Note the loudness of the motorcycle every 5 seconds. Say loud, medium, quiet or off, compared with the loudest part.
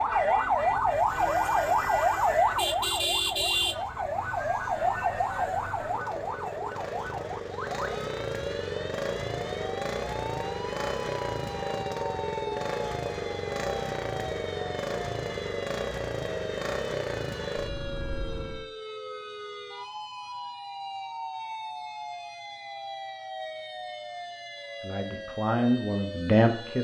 quiet, loud, loud, loud, off, off.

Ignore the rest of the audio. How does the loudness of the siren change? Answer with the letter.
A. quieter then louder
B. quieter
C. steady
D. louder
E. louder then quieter
B.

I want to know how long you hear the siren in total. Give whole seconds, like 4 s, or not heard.
27 s.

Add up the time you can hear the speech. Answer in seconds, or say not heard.
2 s.